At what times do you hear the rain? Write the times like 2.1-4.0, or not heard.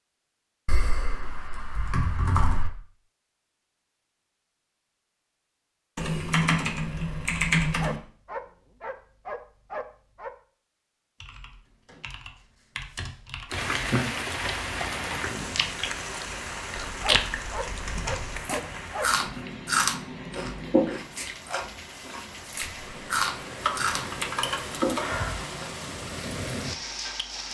13.5-27.4.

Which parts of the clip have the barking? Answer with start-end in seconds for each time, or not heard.
7.8-10.3, 17.0-19.4.